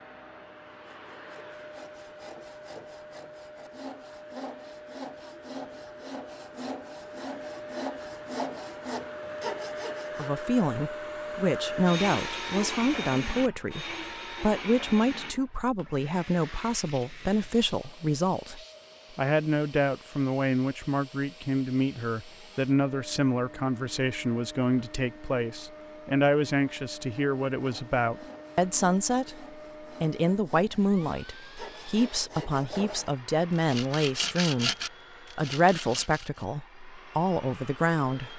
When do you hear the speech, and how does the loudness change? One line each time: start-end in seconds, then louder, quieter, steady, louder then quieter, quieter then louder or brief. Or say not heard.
10.2-34.7 steady
35.4-38.3 brief.